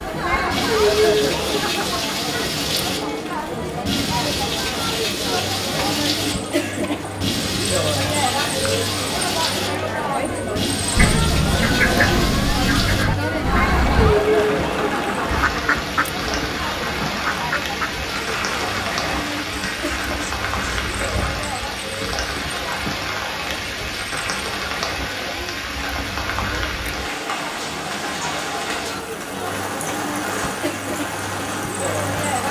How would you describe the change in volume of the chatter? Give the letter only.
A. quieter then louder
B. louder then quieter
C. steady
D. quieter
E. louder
D.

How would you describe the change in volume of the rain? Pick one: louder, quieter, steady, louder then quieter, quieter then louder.
steady.